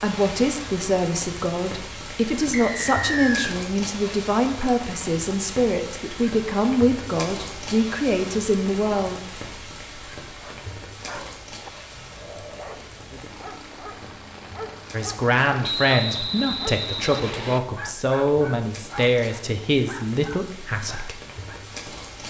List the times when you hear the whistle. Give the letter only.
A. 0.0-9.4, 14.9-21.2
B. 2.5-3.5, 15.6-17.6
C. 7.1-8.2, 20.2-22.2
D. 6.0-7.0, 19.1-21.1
B.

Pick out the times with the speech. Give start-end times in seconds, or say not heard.
0.0-9.4, 14.9-21.2.